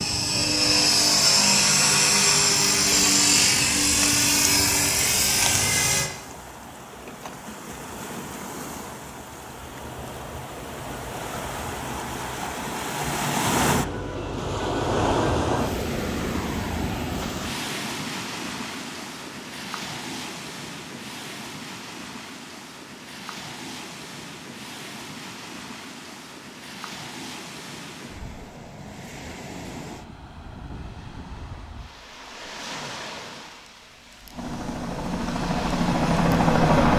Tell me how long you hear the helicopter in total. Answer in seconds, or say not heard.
9 s.